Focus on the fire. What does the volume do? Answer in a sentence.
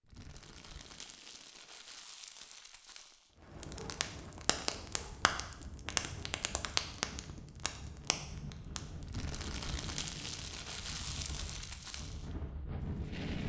The loudness of the fire goes up, then down.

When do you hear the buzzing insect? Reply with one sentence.
You can't hear the buzzing insect here.